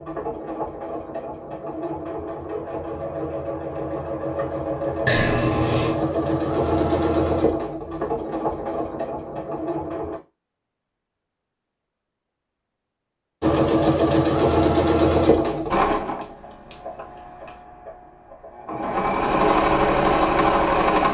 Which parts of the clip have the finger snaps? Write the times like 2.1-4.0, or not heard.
5.0-6.0, 15.9-17.5.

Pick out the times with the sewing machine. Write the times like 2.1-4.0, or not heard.
0.0-10.2, 13.4-21.0.